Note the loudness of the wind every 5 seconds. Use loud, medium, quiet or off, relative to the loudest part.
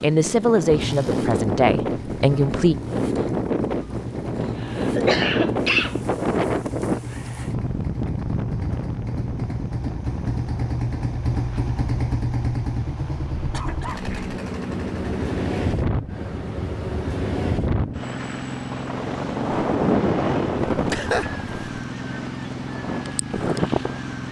loud, loud, medium, loud, loud.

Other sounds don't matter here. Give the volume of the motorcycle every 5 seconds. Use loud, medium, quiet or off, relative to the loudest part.
medium, medium, loud, medium, medium.